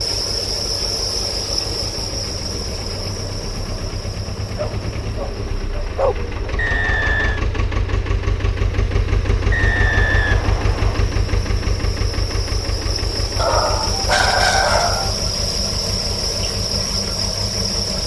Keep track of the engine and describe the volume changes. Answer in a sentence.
The volume of the engine goes up, then down.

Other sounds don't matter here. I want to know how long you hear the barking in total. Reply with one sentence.
The barking can be heard for 4 seconds in total.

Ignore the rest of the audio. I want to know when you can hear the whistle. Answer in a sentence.
The whistle can be heard from 6.5 to 7.4 s and from 9.5 to 11.1 s.